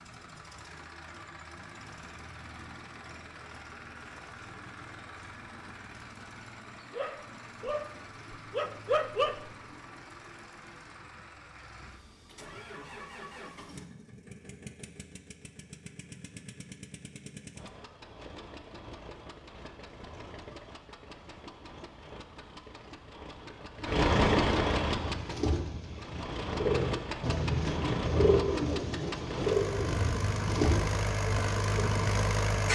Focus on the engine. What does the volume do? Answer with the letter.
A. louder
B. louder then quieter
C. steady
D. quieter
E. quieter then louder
A.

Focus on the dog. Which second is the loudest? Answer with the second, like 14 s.
9 s.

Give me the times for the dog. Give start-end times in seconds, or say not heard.
7.0-9.5.